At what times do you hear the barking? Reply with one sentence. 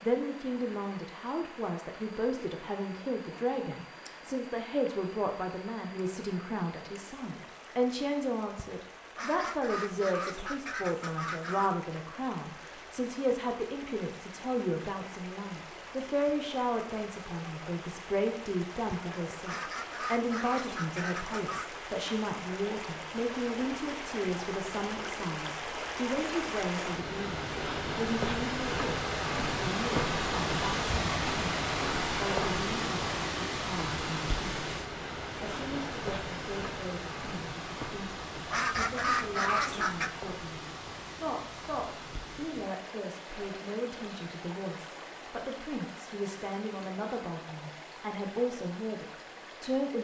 The barking can't be heard in this clip.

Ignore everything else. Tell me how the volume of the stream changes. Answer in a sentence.
The loudness of the stream goes up, then down.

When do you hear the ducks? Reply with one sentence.
The ducks can be heard from 9.2 to 11.7 s, from 19.4 to 21.7 s and from 38.5 to 40.1 s.